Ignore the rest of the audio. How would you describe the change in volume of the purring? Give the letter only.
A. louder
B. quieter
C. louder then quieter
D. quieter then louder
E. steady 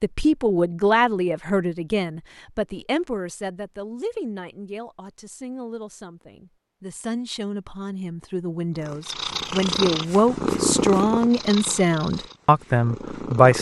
B.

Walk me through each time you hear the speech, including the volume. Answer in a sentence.
You can hear the speech from 0.0 to 13.5 s, getting quieter then louder.